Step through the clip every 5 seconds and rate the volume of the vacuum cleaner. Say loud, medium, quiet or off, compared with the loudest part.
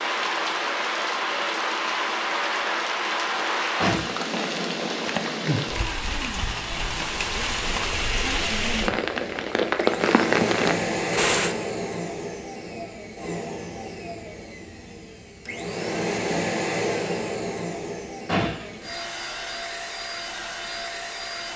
off, medium, loud, loud, loud.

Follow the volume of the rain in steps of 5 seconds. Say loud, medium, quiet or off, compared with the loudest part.
loud, loud, loud, off, off.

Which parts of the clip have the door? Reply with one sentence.
You can hear the door from 3.4 to 4.2 s and from 18.2 to 18.8 s.